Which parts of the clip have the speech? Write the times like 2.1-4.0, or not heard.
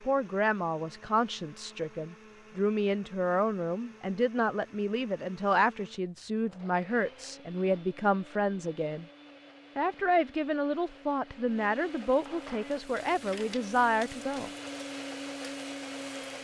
0.1-9.1, 9.8-14.5.